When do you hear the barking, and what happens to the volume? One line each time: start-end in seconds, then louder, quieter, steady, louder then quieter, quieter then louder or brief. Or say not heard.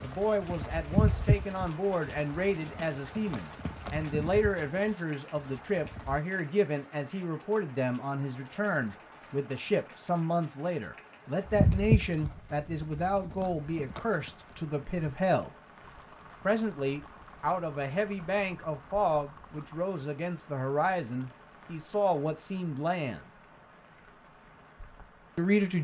not heard.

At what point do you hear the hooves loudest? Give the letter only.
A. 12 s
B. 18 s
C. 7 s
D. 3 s
A.